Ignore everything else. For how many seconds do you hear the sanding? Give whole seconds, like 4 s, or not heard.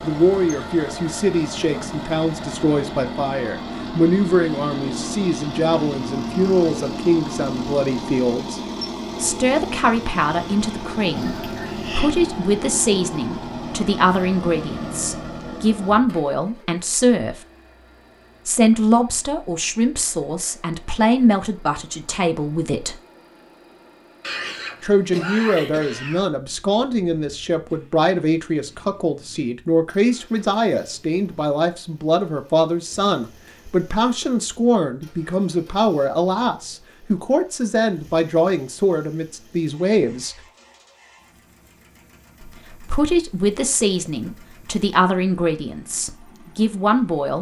not heard.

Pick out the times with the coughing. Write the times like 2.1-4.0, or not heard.
11.2-12.2, 24.2-26.2.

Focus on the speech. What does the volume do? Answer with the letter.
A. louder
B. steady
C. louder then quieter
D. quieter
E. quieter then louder
B.